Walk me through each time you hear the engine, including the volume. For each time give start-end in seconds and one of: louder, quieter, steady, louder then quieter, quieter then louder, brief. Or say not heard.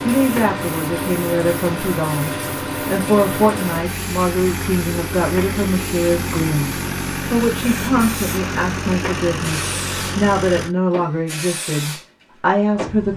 0.0-10.8 steady.